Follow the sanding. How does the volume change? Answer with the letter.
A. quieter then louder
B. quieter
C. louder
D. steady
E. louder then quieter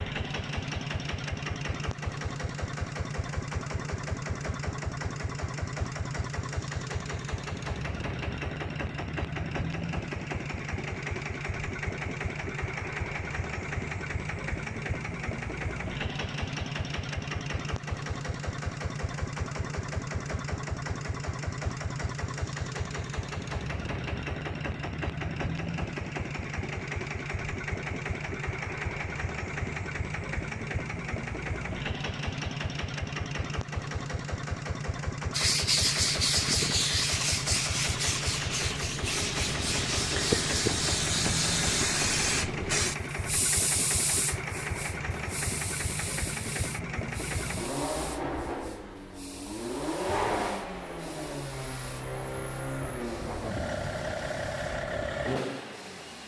B.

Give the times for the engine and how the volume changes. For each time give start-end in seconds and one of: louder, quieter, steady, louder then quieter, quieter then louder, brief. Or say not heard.
0.0-56.2 steady.